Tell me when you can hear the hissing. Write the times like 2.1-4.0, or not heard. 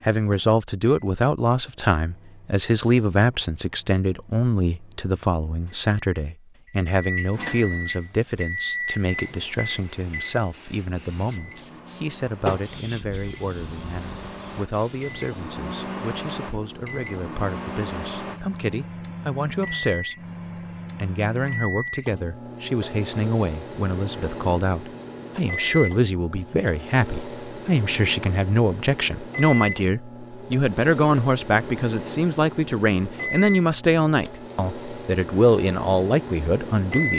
7.9-15.6.